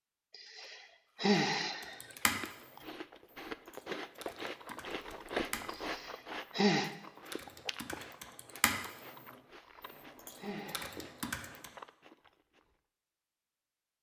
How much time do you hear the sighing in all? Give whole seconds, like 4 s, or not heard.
4 s.